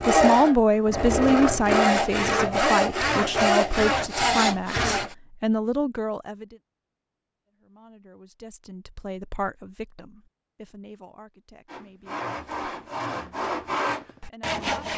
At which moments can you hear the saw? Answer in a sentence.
The saw can be heard from 0.0 to 5.2 s and from 11.7 to 14.9 s.